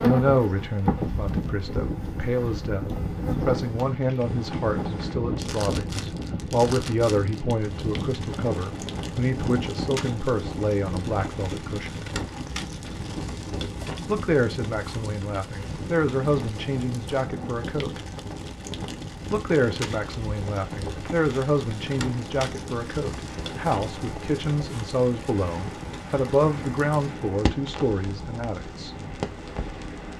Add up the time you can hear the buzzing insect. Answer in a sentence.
The buzzing insect can be heard for 5 seconds in total.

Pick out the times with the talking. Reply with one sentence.
The talking can be heard from 0.0 to 12.1 s, from 14.1 to 18.0 s and from 19.3 to 28.9 s.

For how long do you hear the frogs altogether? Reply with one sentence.
You can't hear the frogs here.